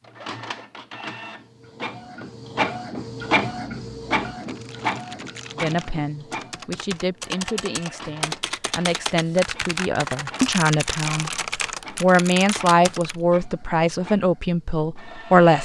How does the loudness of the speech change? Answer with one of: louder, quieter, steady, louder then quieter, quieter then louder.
louder.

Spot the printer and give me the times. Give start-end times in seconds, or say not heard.
0.0-15.6.